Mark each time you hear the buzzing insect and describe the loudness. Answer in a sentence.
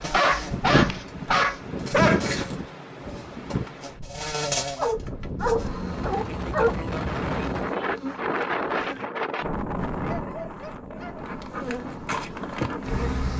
You can hear the buzzing insect from 0.0 to 9.1 s, getting louder then quieter; and briefly from 11.2 to 13.3 s.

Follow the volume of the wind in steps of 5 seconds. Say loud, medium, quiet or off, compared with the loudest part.
loud, loud, medium.